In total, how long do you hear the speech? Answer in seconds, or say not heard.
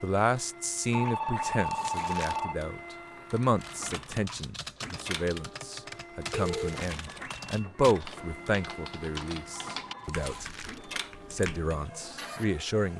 12 s.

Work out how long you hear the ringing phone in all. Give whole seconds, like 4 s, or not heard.
3 s.